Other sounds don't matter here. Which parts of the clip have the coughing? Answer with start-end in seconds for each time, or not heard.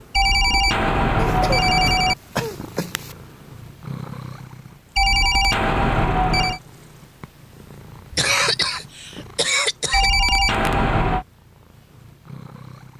1.1-3.1, 8.1-10.1.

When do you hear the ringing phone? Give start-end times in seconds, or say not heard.
0.1-2.1, 5.0-6.6, 9.9-11.2.